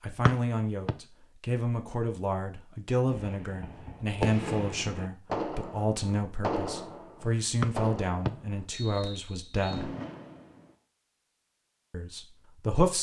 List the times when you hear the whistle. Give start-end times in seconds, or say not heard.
0.2-0.9, 7.6-9.8.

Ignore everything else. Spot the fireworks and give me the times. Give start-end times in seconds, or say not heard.
3.0-10.7.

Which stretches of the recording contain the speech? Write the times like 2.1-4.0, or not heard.
0.0-9.9, 11.9-12.9.